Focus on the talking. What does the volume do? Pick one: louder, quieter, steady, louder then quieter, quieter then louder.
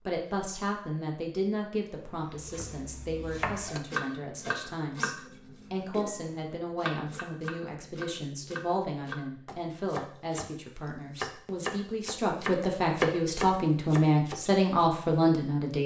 louder.